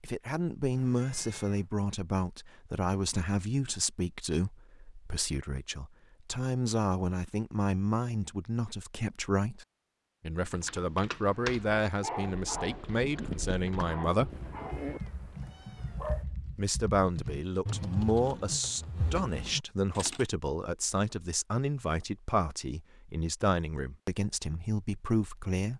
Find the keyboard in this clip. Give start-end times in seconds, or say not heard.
10.3-20.2.